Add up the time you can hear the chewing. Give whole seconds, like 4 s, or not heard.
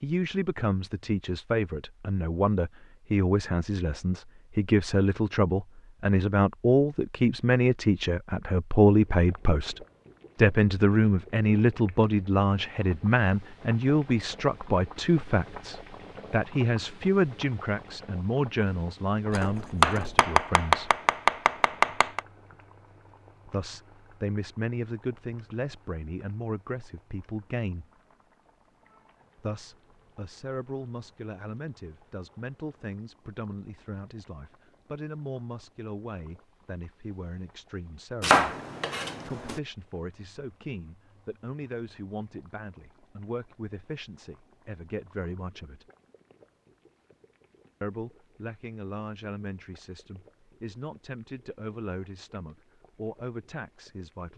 not heard.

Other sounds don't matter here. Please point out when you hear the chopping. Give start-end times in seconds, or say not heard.
19.3-22.2, 38.2-39.6.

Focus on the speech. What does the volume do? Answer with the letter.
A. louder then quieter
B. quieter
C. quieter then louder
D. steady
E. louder
B.